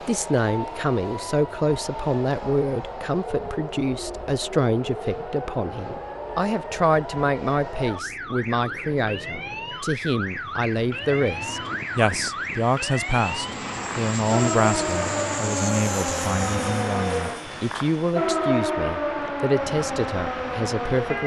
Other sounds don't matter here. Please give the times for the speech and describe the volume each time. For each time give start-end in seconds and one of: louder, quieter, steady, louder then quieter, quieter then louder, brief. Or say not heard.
0.1-21.2 steady.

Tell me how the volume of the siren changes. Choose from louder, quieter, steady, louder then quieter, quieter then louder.
louder.